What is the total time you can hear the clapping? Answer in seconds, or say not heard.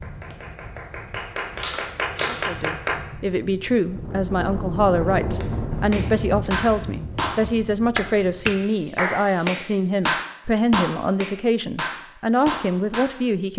11 s.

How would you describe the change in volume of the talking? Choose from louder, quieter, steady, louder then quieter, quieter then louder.
steady.